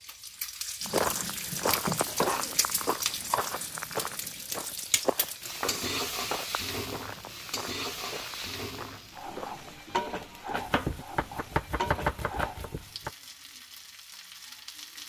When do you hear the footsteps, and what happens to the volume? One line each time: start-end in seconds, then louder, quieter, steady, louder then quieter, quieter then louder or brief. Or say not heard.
0.8-9.9 quieter.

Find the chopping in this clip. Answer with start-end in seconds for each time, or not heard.
1.5-3.5, 5.6-6.5, 10.6-13.1.